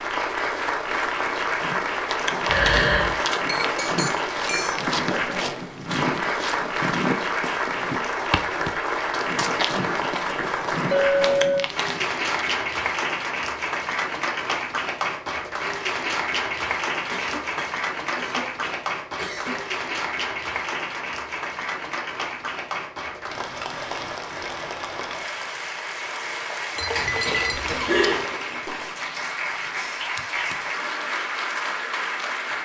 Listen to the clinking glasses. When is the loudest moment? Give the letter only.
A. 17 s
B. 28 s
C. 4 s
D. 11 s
D.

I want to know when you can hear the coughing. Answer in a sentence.
You can hear the coughing from 2.5 to 3.2 s, from 17.1 to 19.6 s and from 26.9 to 28.3 s.